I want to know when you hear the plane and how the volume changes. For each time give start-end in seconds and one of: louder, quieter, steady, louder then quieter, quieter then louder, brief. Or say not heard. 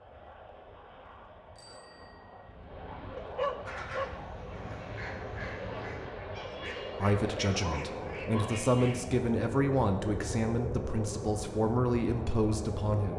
0.0-13.1 louder.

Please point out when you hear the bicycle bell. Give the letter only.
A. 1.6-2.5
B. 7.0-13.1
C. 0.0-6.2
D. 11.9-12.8
A.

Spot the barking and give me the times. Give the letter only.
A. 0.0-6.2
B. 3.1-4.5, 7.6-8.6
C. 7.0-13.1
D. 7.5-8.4
B.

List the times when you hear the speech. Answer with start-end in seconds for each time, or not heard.
7.0-13.1.